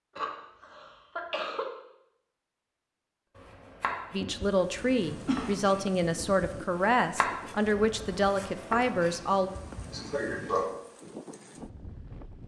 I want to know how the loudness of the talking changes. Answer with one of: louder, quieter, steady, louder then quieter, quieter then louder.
steady.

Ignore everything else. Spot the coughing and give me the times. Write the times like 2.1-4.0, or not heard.
0.1-1.6, 4.2-5.5, 9.9-10.7.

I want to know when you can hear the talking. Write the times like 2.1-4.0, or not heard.
4.1-9.5.